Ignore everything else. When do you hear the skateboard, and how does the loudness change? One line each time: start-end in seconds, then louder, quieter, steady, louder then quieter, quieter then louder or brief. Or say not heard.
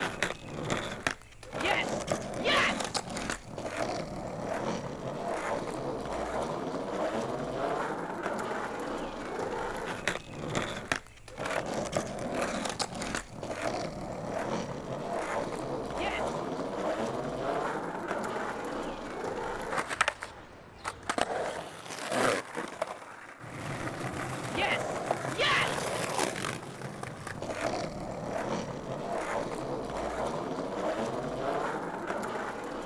0.0-32.8 steady.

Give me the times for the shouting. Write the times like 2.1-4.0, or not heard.
1.6-2.9, 15.9-16.4, 24.5-25.8.